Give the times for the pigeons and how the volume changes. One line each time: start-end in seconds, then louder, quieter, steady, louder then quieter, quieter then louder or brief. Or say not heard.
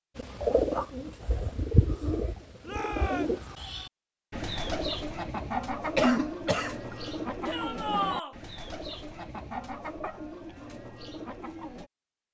0.1-11.9 quieter.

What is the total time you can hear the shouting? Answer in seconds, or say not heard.
2 s.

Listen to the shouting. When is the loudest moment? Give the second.
8 s.